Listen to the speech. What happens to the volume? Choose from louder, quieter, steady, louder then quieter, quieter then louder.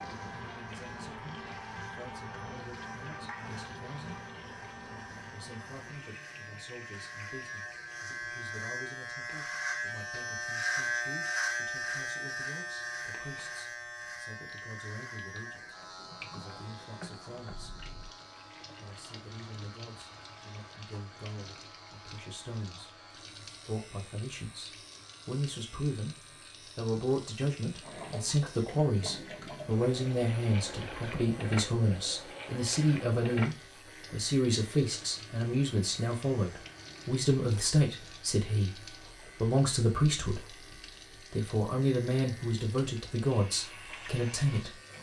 louder.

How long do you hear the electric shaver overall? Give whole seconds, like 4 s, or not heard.
45 s.